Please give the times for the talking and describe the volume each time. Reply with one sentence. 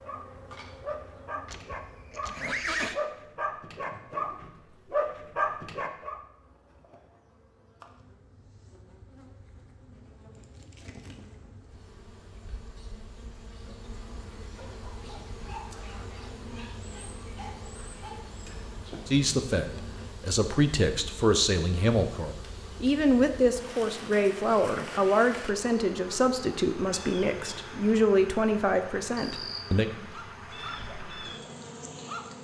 You can hear the talking from 19.1 to 29.9 s, at a steady volume.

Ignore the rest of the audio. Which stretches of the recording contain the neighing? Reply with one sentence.
You can hear the neighing from 1.4 to 3.0 s.